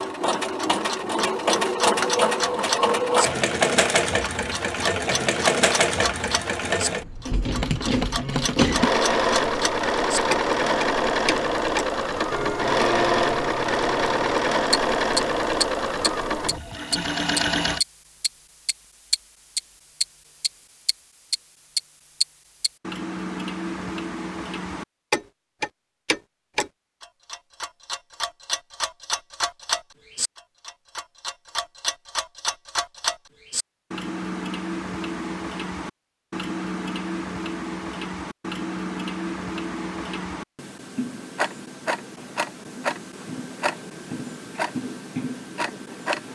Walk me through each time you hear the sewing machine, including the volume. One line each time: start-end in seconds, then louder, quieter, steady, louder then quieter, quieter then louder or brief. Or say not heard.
0.0-17.8 steady.